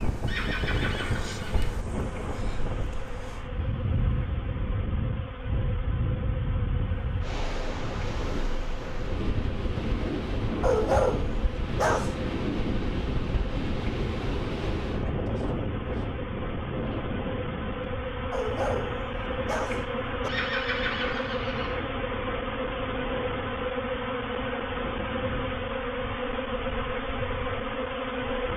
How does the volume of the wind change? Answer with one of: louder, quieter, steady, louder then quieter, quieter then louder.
quieter.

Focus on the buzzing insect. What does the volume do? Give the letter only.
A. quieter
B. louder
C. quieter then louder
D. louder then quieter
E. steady
B.